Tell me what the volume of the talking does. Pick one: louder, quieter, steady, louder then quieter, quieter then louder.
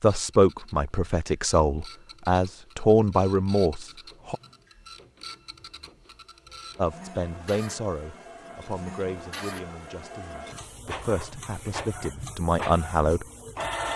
quieter then louder.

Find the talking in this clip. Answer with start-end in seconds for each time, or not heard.
0.0-4.3, 6.8-13.2.